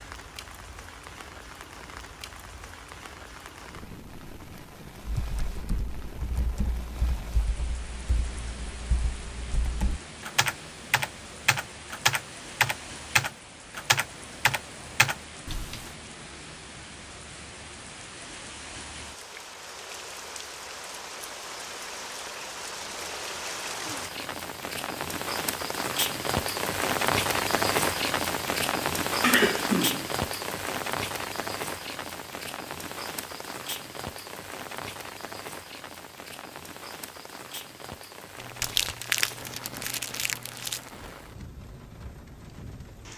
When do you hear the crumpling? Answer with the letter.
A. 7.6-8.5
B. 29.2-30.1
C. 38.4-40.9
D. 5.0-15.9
C.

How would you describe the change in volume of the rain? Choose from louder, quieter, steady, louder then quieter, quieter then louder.
louder then quieter.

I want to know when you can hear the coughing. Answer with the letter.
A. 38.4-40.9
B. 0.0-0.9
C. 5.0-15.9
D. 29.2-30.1
D.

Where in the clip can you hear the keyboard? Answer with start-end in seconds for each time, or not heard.
5.0-15.9.